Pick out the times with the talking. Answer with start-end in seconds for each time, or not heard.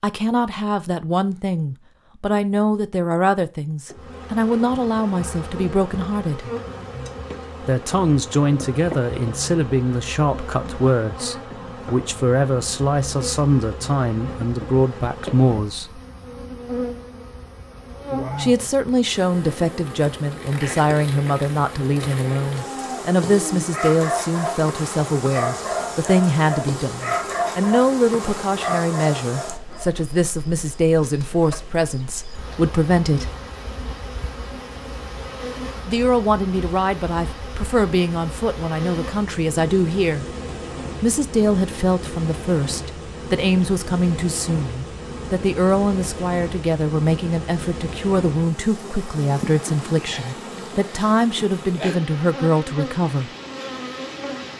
0.0-6.5, 7.6-16.0, 18.4-33.3, 35.9-40.2, 41.0-53.3.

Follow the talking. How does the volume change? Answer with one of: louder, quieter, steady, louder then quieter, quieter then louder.
steady.